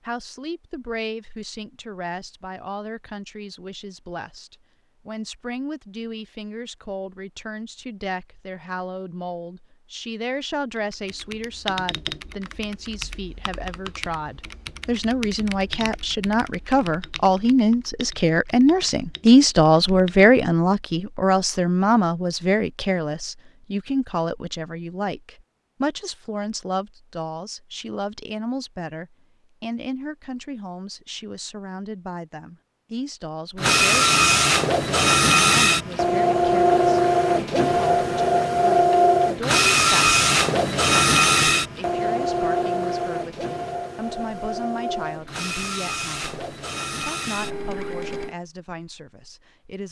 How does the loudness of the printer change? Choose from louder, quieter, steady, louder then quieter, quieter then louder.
quieter.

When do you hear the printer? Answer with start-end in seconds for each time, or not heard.
33.5-48.4.